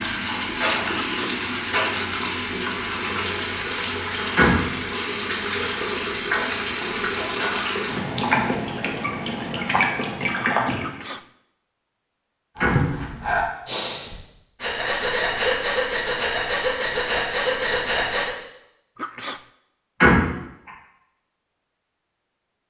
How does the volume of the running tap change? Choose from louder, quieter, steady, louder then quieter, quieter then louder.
steady.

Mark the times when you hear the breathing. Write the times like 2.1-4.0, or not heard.
12.6-18.4.